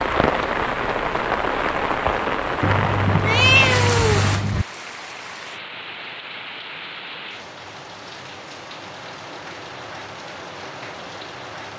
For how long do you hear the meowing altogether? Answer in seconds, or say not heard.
2 s.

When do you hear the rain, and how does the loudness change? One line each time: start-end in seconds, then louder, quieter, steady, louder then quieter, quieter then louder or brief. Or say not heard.
0.0-11.7 quieter.